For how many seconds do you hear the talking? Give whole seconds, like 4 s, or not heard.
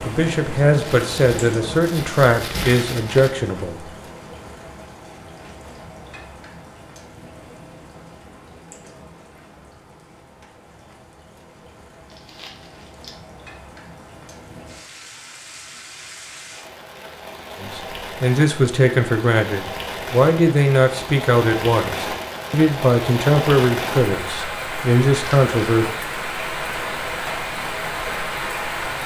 12 s.